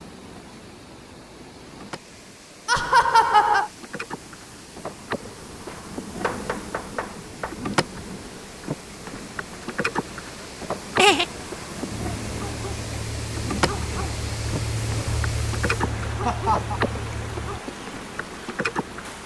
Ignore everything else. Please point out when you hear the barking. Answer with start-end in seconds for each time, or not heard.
12.2-17.6.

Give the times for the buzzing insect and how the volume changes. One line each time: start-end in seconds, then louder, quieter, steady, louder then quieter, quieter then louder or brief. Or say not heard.
0.0-19.2 louder.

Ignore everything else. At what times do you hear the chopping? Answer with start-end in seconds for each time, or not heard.
5.7-7.5.